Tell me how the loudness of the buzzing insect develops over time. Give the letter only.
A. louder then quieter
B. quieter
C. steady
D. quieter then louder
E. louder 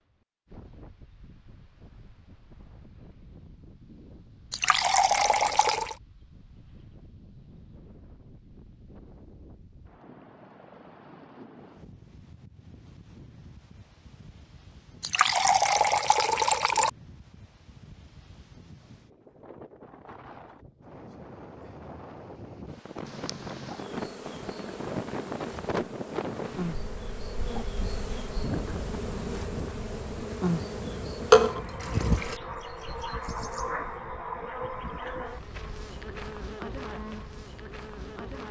A.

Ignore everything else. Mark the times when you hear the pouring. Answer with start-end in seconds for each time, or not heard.
4.5-6.0, 15.0-16.9, 31.3-32.4.